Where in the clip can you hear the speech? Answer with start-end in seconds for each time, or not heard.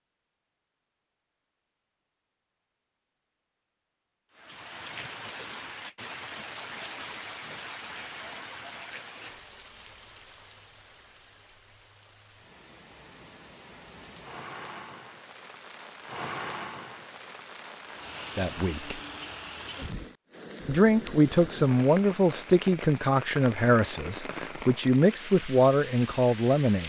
18.4-19.0, 20.6-26.8.